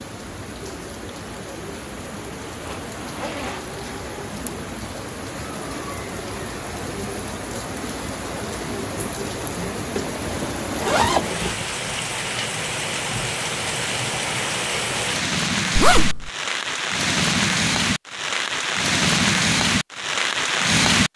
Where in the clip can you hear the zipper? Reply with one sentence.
The zipper can be heard from 2.6 to 3.7 s, from 9.9 to 11.6 s and from 15.8 to 16.3 s.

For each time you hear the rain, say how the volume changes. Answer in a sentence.
The rain can be heard from 0.0 to 21.1 s, getting louder.